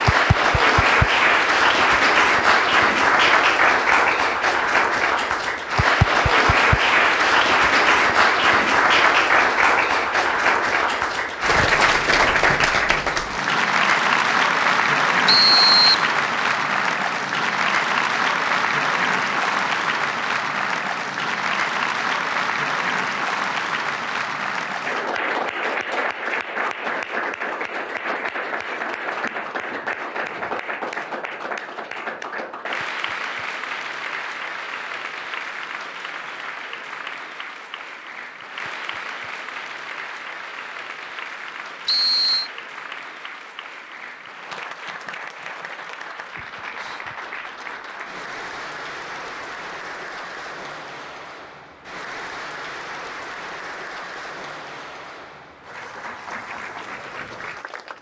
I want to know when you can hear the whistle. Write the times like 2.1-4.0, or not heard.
15.2-16.1, 41.9-42.5.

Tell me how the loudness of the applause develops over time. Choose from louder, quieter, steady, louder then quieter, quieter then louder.
quieter.